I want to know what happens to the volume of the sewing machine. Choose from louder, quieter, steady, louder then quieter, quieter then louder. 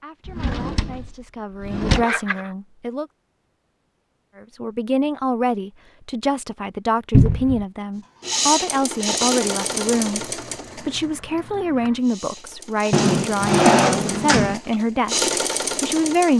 quieter then louder.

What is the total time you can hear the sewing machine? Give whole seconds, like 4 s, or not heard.
8 s.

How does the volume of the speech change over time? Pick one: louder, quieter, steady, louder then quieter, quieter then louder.
louder.